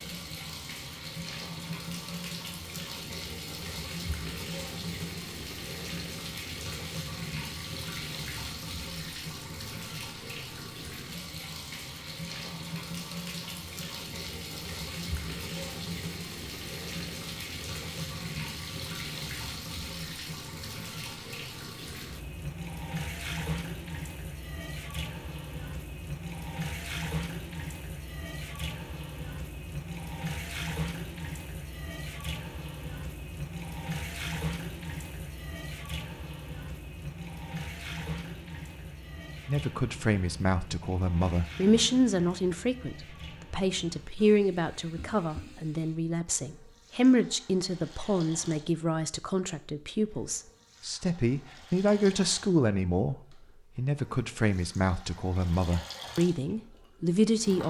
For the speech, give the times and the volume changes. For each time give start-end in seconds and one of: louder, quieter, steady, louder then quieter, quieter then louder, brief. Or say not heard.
39.5-57.6 steady.